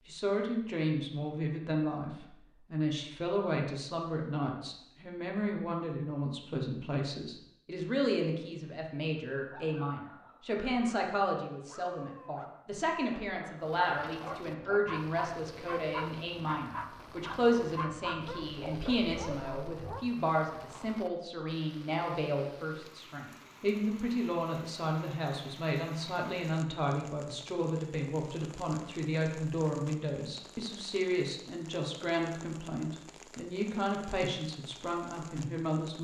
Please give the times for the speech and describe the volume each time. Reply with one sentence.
You can hear the speech from 0.1 to 36.0 s, at a steady volume.